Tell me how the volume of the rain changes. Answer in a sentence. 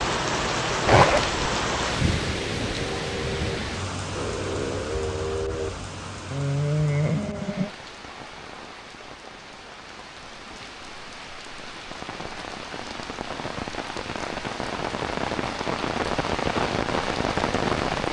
The loudness of the rain goes down, then up.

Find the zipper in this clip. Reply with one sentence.
The zipper can be heard from 0.8 to 1.4 s.